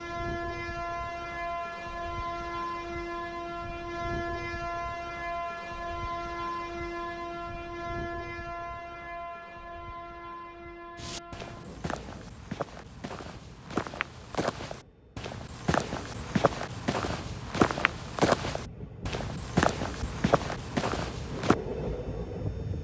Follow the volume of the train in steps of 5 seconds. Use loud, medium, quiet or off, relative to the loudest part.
loud, loud, quiet, medium, loud.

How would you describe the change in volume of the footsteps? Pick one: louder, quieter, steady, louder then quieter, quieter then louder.
louder.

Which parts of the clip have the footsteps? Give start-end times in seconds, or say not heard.
10.9-21.6.